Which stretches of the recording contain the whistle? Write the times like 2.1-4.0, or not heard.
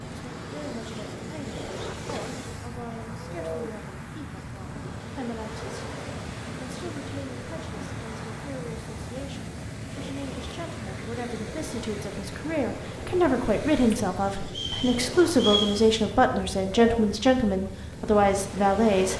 14.4-15.8.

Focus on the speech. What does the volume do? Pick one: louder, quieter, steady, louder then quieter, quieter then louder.
louder.